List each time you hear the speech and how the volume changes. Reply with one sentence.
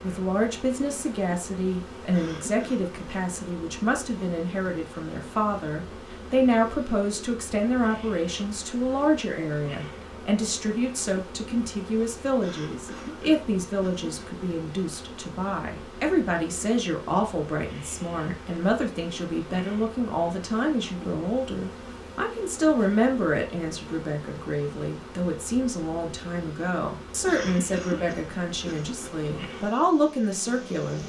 The speech can be heard from 0.0 to 31.0 s, at a steady volume.